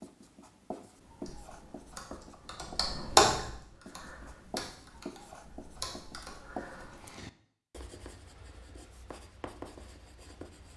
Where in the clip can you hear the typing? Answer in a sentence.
You can hear the typing from 1.1 to 7.1 s.